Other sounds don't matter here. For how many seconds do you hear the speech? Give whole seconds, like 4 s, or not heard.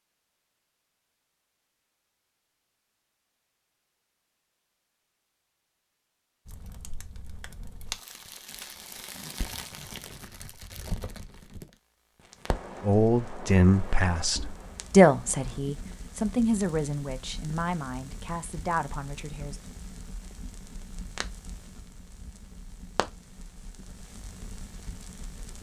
7 s.